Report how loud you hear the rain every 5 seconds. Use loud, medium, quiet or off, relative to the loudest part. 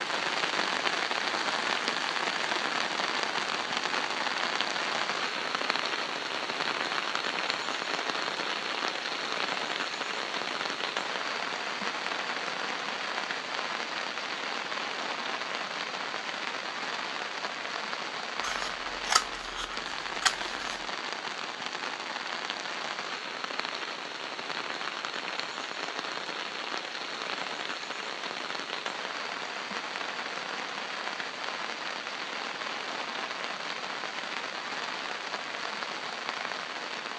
loud, loud, loud, medium, medium, medium, medium, medium.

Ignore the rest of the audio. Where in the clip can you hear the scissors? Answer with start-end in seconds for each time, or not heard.
18.4-20.8.